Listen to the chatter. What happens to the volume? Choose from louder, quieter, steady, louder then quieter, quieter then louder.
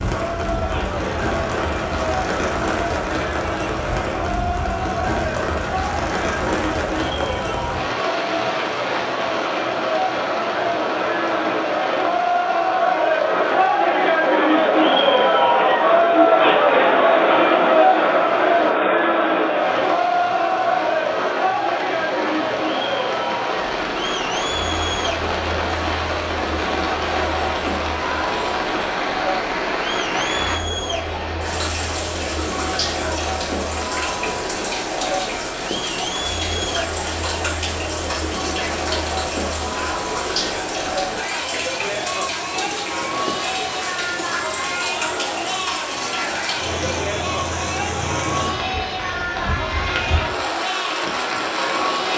louder then quieter.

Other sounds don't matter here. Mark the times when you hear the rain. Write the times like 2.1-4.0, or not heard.
0.0-52.1.